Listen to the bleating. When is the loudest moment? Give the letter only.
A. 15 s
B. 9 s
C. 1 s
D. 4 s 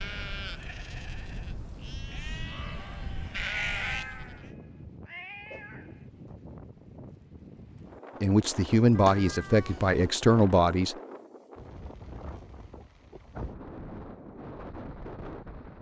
D.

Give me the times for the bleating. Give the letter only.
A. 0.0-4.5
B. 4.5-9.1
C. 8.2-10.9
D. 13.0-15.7
A.